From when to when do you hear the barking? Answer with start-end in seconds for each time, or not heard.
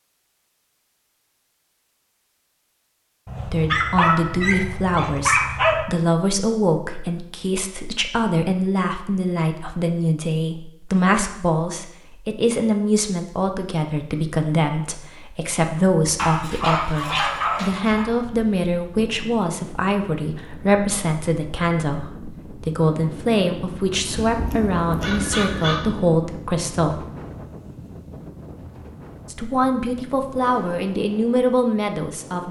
3.2-5.8, 16.1-18.1, 24.1-25.9.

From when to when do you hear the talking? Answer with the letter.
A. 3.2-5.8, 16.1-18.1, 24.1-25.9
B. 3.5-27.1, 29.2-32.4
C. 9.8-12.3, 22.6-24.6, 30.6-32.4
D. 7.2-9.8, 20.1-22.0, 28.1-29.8
B.